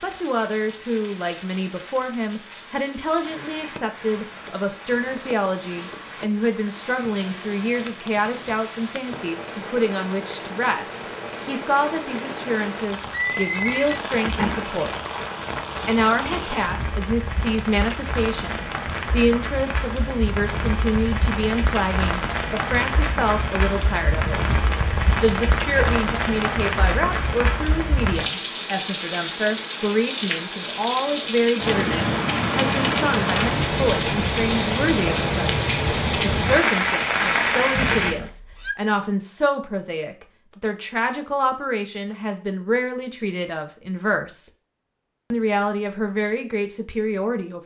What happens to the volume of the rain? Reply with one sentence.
The loudness of the rain goes up.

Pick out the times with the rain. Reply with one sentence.
The rain can be heard from 0.0 to 38.1 s.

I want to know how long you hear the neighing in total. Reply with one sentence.
You can hear the neighing for 3 seconds altogether.